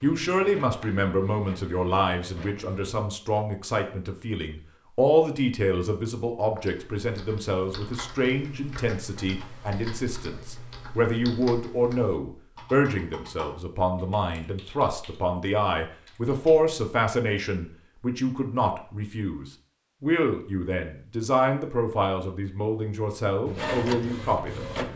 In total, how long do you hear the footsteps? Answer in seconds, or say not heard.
not heard.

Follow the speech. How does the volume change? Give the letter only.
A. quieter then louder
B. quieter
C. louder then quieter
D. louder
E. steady
E.